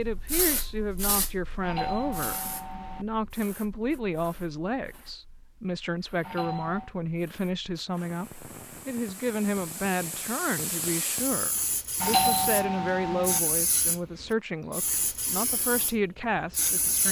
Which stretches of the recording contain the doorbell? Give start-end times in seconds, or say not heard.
1.6-3.0, 6.2-6.9, 12.0-13.4.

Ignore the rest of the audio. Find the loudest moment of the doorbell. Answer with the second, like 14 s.
12 s.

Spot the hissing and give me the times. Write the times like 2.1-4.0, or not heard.
0.0-17.0.